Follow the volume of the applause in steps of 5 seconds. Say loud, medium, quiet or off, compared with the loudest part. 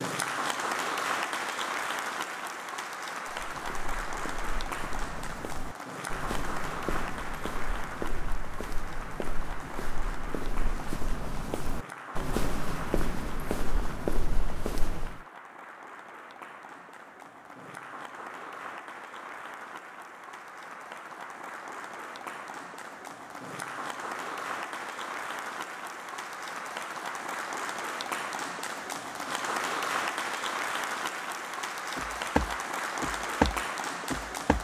loud, medium, medium, medium, medium, loud, loud.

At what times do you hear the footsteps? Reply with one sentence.
You can hear the footsteps from 3.3 to 15.2 s and from 31.9 to 34.6 s.